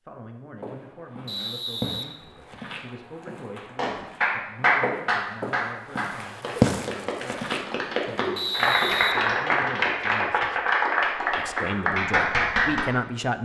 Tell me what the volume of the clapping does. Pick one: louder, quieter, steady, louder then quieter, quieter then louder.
quieter then louder.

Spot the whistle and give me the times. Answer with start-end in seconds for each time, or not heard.
1.2-2.8, 8.3-9.8.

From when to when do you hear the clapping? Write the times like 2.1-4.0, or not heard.
3.8-12.8.